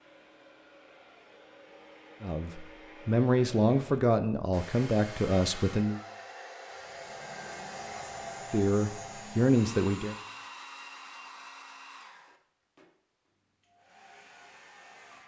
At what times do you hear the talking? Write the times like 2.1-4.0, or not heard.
2.2-6.0, 8.5-10.2.